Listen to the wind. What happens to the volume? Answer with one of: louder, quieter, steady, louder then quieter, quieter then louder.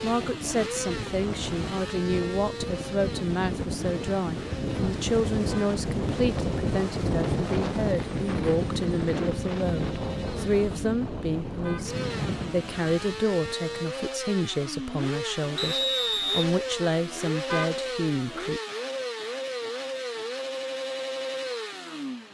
louder then quieter.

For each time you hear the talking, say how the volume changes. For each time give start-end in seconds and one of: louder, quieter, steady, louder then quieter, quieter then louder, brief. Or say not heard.
0.0-18.6 steady.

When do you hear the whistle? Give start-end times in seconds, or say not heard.
15.6-16.5.